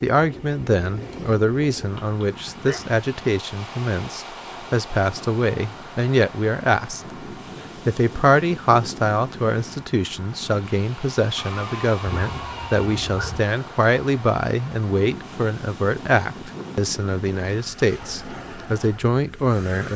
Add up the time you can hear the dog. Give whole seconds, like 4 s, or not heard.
3 s.